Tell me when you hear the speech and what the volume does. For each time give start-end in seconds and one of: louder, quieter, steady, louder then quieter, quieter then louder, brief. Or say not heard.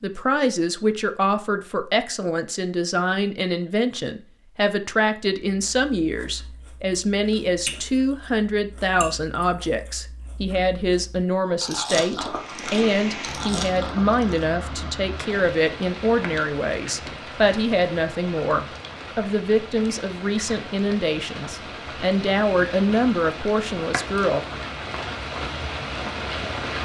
0.0-24.4 steady.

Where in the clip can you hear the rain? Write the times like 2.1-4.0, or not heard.
12.2-26.7.